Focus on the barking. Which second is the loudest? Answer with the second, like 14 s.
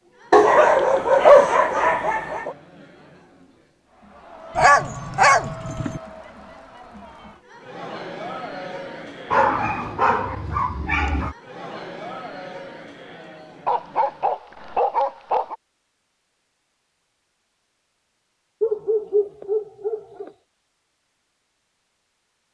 1 s.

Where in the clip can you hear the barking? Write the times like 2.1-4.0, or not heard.
0.3-2.5, 4.5-6.0, 9.3-11.3, 13.7-15.6, 18.6-20.3.